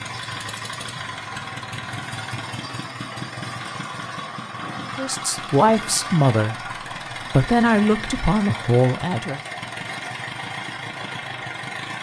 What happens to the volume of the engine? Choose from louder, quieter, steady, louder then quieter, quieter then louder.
steady.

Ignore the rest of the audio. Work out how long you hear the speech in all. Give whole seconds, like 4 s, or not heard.
4 s.